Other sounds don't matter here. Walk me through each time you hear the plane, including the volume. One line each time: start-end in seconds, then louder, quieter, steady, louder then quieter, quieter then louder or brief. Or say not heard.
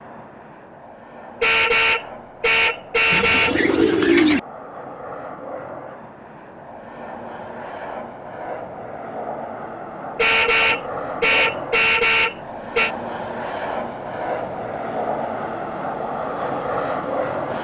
0.0-17.5 louder.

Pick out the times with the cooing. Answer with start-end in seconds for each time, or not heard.
3.1-4.4.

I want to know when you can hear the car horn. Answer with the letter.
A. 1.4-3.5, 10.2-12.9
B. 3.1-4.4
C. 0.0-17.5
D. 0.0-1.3
A.